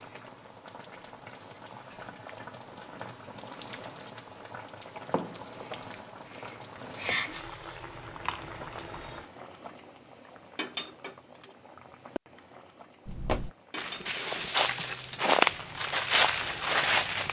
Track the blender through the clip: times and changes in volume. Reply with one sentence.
You can't hear the blender here.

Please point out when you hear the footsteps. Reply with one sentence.
The footsteps can be heard from 13.1 to 17.2 s.